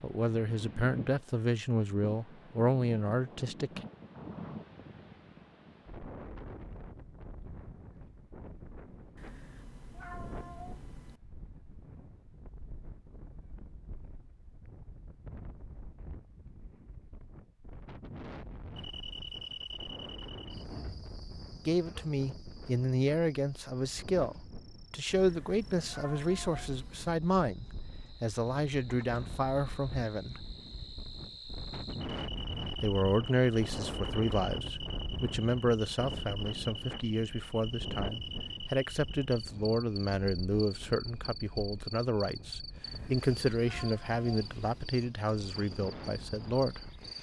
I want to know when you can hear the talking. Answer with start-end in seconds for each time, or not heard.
0.0-3.8, 21.6-30.4, 32.8-46.9.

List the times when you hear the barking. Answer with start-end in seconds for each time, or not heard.
not heard.